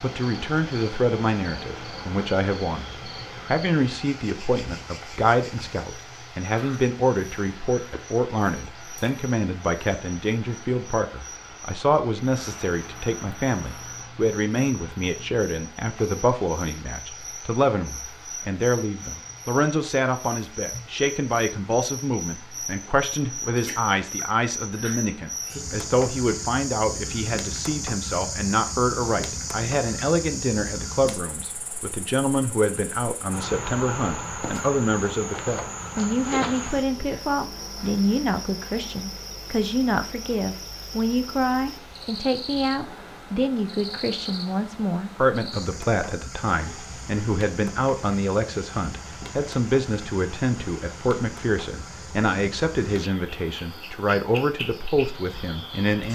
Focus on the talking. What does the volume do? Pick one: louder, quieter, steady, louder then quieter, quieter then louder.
steady.